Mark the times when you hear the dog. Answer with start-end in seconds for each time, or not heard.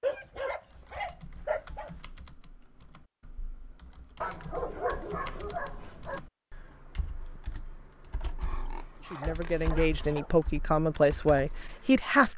0.0-2.0, 4.2-6.2, 8.3-10.4.